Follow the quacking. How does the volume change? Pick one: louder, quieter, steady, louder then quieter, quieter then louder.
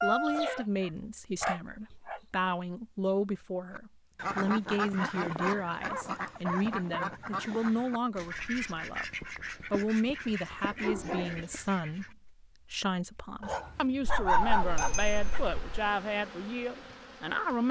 quieter.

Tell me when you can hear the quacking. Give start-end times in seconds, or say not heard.
3.8-12.2.